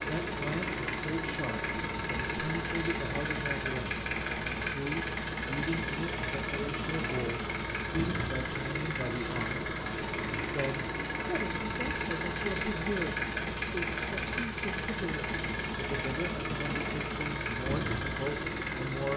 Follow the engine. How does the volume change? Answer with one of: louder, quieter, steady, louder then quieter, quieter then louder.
steady.